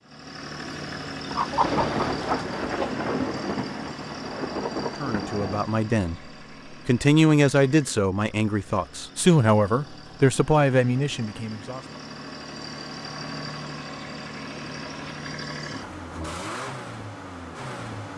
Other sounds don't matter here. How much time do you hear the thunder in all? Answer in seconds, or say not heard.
4 s.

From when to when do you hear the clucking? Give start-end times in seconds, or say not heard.
1.2-3.0.